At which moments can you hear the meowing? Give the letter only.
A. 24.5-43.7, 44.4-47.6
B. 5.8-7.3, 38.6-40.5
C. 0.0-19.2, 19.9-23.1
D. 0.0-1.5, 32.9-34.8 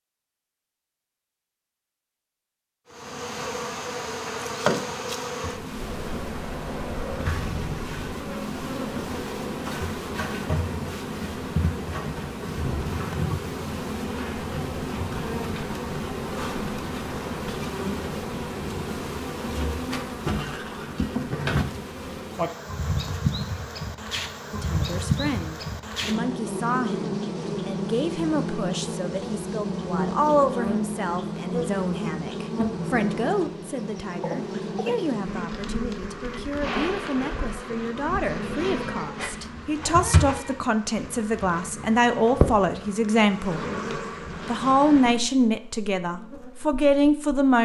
B.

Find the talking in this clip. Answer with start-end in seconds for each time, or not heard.
24.5-43.7, 44.4-47.6.